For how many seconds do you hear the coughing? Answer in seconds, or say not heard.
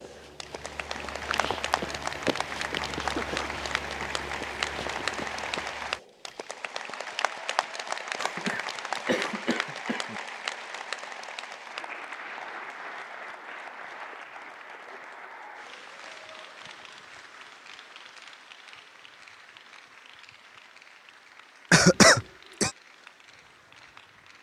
4 s.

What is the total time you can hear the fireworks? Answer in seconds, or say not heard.
not heard.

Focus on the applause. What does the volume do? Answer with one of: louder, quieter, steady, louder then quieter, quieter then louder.
quieter.